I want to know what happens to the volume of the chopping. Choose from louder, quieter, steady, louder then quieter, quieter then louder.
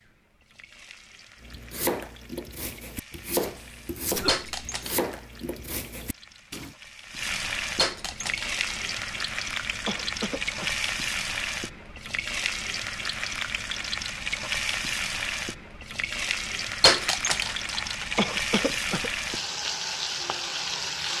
quieter.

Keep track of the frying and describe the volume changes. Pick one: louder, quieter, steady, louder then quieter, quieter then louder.
louder.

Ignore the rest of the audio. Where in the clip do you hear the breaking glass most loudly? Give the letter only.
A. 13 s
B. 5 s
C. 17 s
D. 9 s
C.